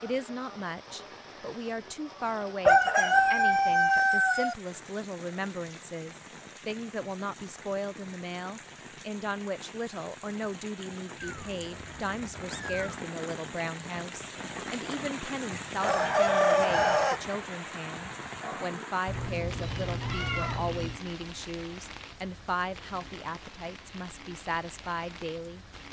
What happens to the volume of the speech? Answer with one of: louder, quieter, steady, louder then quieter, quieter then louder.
steady.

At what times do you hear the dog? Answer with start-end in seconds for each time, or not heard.
not heard.